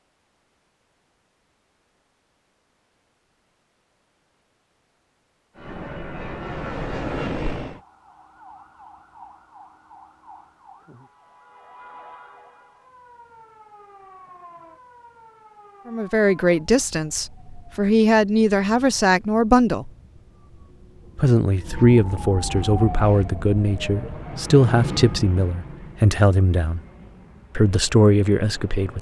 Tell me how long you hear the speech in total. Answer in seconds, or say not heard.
11 s.